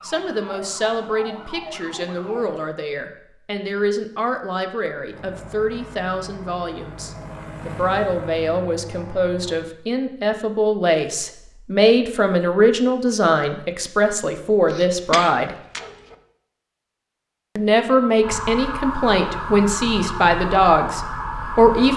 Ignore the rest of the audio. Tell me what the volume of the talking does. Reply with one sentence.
The volume of the talking goes up.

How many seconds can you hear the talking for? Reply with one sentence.
The talking can be heard for 20 seconds in total.